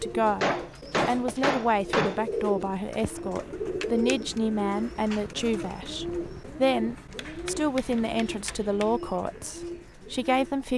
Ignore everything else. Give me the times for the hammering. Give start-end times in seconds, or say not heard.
0.4-2.2, 7.2-9.0.